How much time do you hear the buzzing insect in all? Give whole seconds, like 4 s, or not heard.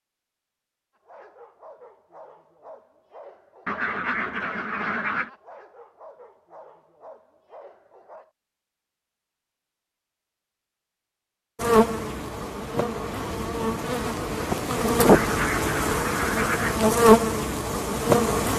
7 s.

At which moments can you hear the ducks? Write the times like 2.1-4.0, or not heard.
3.6-5.3, 14.9-16.8.